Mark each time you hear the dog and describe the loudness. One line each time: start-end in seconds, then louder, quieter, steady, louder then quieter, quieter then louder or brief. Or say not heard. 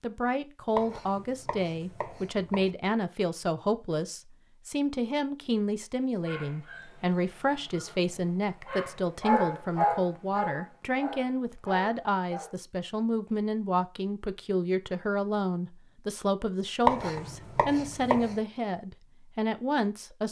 6.2-12.6 louder then quieter.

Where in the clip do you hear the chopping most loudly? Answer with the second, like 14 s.
17 s.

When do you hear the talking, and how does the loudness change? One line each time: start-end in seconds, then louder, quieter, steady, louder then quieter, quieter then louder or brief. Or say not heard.
0.0-20.2 steady.